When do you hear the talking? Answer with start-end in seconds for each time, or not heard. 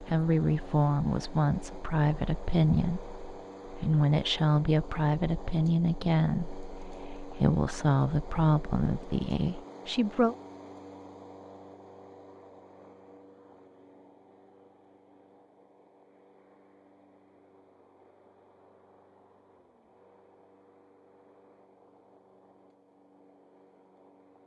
0.0-10.3.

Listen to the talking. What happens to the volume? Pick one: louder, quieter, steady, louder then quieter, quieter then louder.
steady.